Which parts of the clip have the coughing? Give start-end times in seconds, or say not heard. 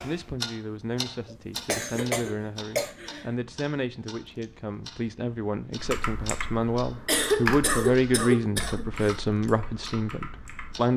1.3-3.2, 7.0-9.2.